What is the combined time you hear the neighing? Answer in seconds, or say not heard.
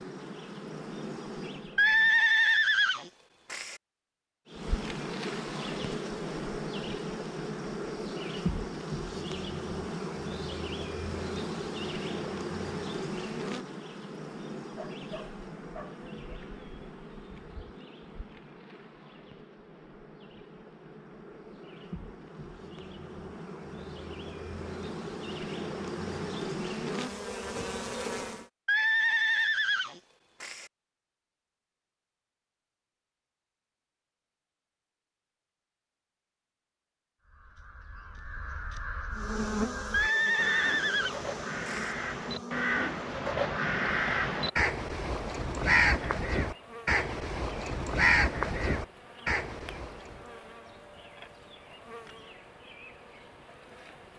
6 s.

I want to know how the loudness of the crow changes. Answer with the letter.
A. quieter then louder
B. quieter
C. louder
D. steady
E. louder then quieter
C.